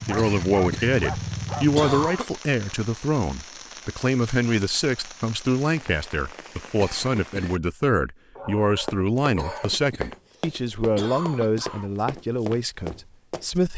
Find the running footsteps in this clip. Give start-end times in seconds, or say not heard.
8.8-13.6.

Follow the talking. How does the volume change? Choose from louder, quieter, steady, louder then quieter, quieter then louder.
steady.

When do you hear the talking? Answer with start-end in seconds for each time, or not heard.
0.1-13.7.